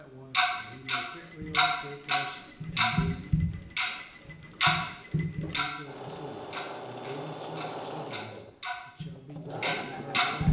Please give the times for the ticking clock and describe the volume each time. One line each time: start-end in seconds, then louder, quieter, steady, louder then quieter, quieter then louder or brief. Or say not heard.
0.3-10.4 quieter then louder.